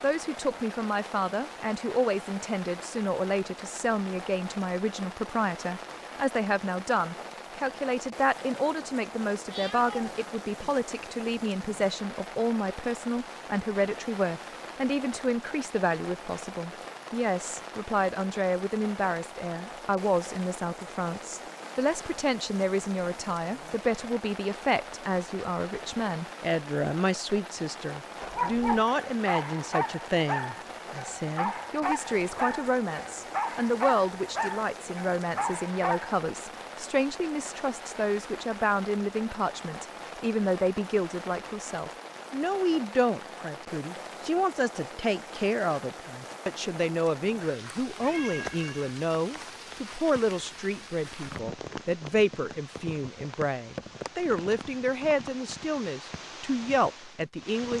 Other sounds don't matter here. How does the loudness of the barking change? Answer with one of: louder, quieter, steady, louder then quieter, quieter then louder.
steady.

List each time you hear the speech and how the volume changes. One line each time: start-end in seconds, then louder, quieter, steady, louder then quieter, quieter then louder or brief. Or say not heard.
0.0-57.7 steady.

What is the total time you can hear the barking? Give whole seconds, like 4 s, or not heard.
8 s.